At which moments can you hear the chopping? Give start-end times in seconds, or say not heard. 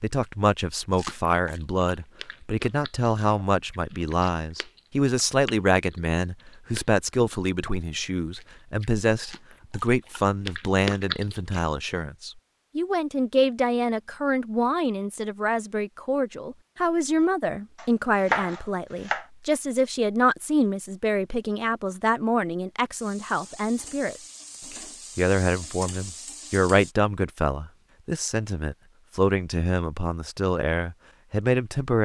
17.8-19.2.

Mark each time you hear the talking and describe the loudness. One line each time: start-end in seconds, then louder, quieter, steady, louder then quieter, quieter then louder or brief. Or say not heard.
0.0-32.0 steady.